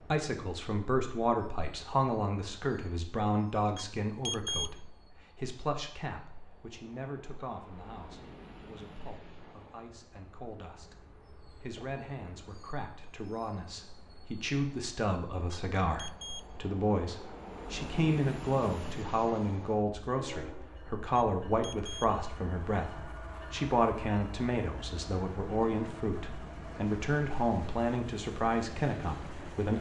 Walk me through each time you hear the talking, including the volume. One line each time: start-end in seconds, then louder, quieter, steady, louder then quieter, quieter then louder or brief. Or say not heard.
0.1-29.7 quieter then louder.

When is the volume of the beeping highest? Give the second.
4 s.